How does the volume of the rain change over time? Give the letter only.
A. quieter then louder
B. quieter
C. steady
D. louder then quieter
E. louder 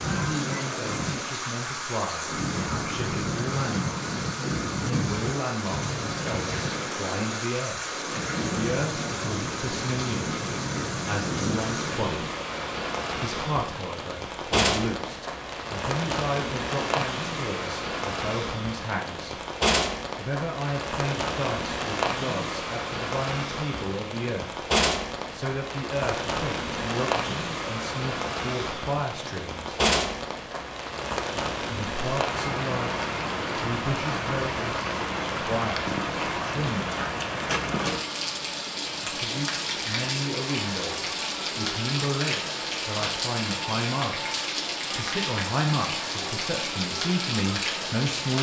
C.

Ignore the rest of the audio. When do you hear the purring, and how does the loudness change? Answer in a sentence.
The purring can't be heard in this clip.